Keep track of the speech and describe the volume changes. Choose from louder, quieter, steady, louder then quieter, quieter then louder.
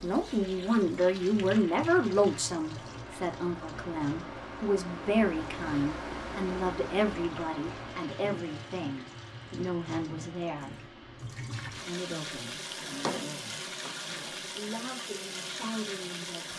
quieter.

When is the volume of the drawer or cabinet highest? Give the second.
13 s.